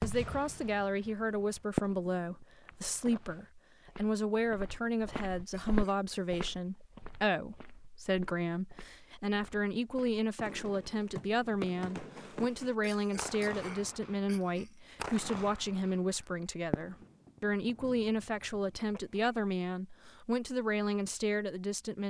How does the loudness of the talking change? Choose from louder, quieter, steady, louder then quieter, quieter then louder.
steady.